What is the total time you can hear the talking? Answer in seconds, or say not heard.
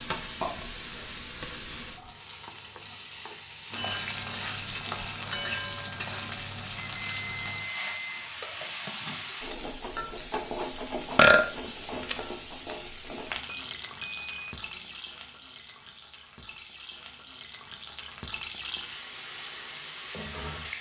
not heard.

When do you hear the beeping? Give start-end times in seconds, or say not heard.
6.8-8.3, 13.7-15.0.